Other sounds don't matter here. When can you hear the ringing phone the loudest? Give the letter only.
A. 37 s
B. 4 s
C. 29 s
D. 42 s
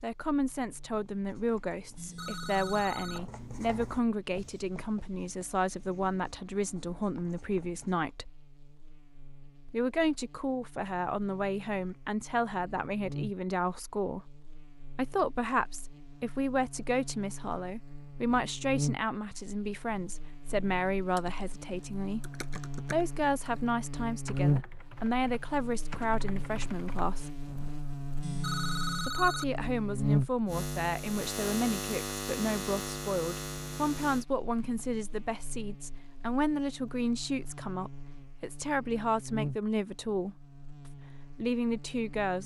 C.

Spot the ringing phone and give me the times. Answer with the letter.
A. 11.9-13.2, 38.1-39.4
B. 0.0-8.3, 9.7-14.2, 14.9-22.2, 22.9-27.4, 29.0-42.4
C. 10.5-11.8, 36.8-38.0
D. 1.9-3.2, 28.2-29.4
D.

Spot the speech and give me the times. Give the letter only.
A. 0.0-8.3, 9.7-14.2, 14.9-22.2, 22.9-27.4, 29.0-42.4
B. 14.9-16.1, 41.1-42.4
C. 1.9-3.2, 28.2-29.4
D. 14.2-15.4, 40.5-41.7
A.